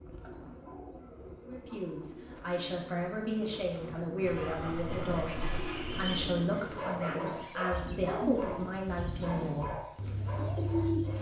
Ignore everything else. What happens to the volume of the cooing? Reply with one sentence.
The volume of the cooing goes up.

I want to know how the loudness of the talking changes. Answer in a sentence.
The loudness of the talking stays about the same.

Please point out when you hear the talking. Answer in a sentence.
The talking can be heard from 1.4 to 9.8 s.